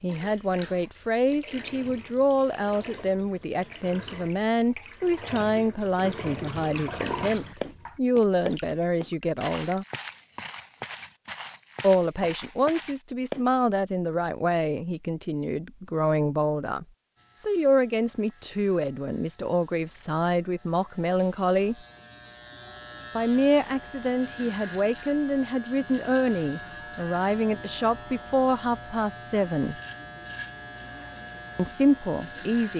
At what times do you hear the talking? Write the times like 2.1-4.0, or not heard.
0.0-9.8, 11.8-21.8, 23.1-29.8, 31.6-32.7.